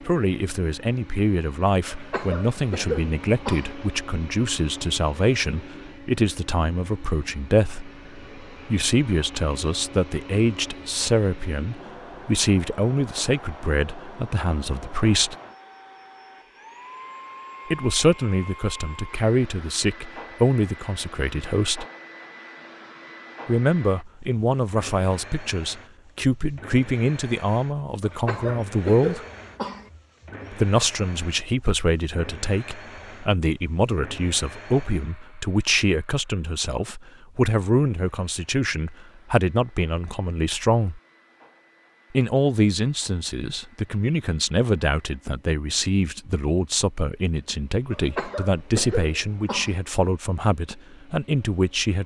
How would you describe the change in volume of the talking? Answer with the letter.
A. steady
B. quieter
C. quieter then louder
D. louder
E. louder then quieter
A.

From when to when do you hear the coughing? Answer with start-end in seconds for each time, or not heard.
1.9-3.8, 28.0-29.9, 47.9-49.8.